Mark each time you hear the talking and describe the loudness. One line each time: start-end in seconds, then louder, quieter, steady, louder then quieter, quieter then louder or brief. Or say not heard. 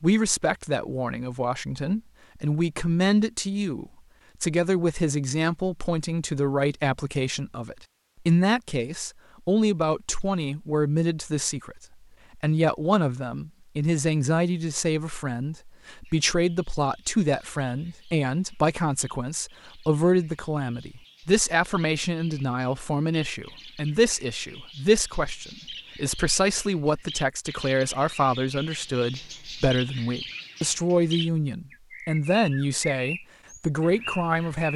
0.0-34.7 steady.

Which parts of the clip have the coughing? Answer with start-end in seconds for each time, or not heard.
not heard.